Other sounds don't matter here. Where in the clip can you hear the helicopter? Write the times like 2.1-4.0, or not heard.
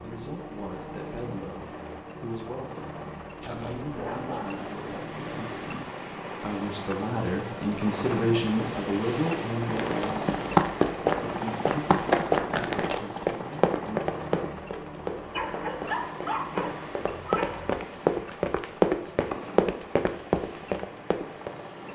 0.0-21.9.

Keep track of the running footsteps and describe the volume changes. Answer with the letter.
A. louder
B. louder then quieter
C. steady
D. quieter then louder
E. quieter
D.